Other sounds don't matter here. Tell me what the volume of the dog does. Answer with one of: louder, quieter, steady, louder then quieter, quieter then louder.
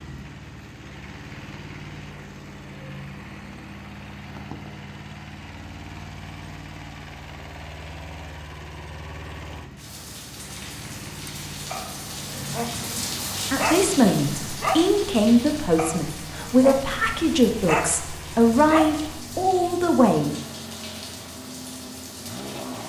louder.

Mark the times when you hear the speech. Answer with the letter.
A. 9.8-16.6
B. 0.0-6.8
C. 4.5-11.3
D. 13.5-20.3
D.